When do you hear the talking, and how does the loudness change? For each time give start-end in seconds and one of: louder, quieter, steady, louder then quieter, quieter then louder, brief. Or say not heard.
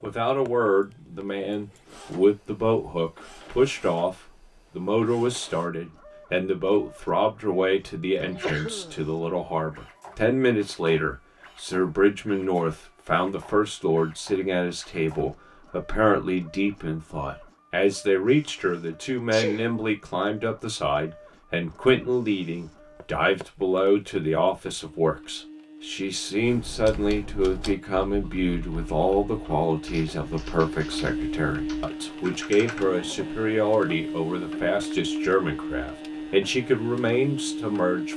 0.0-38.1 steady.